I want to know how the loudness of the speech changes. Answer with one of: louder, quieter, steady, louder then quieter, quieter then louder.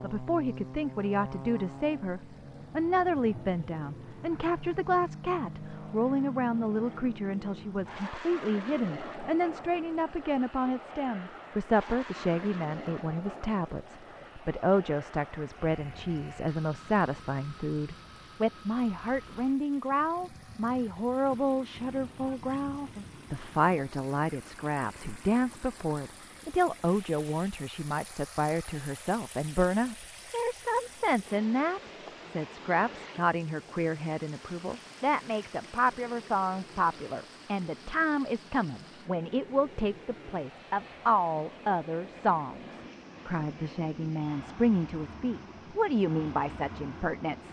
steady.